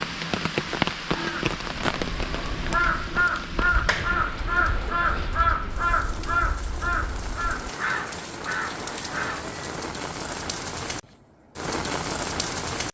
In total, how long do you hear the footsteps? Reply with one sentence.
The footsteps can't be heard in this clip.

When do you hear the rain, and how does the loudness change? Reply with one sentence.
You can hear the rain from 0.0 to 12.8 s, getting quieter then louder.